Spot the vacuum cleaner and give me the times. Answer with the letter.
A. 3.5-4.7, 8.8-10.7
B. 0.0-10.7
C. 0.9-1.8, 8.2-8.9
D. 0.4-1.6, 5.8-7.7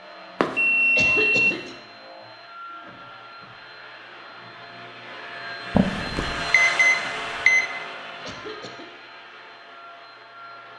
B.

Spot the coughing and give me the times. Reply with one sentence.
The coughing can be heard from 0.9 to 1.8 s and from 8.2 to 8.9 s.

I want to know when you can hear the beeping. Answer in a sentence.
The beeping can be heard from 0.4 to 1.6 s and from 5.8 to 7.7 s.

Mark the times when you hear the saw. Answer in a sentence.
The saw can't be heard in this clip.